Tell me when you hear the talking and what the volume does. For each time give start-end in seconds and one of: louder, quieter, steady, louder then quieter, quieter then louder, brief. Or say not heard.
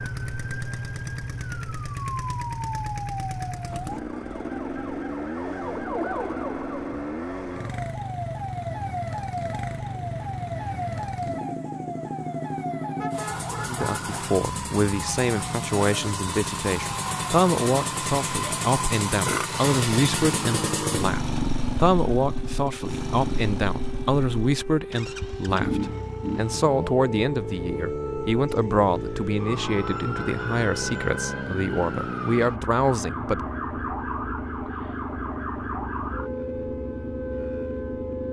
13.7-33.5 steady.